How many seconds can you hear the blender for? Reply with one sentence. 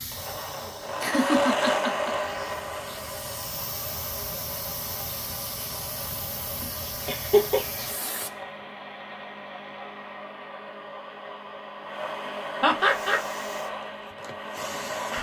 The blender can be heard for 15 seconds in total.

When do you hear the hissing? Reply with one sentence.
You can hear the hissing from 0.0 to 8.4 s and from 12.8 to 15.1 s.